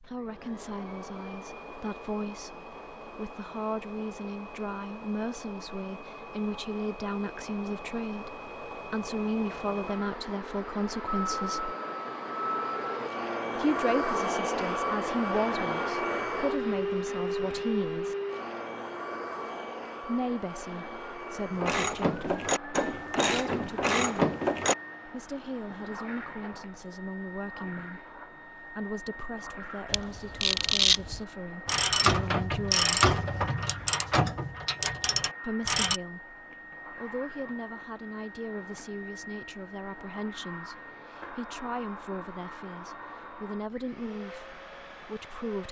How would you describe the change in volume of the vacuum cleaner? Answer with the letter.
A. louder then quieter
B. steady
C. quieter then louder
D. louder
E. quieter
A.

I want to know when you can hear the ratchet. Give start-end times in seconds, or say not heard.
21.6-24.8, 29.9-36.0.